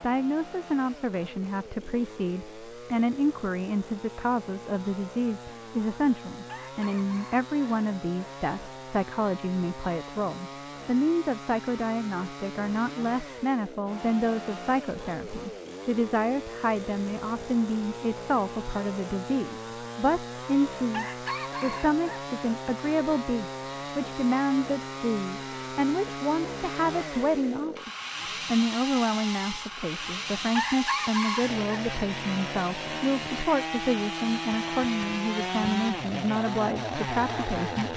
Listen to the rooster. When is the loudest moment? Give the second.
31 s.